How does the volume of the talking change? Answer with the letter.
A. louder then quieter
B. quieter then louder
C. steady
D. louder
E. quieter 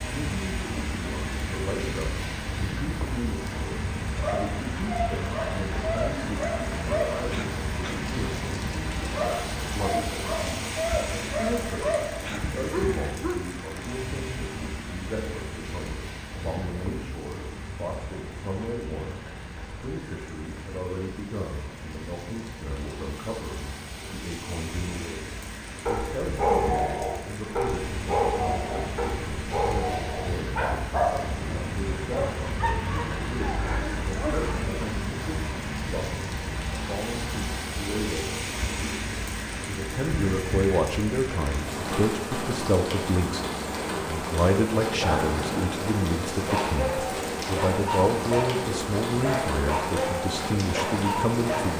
D.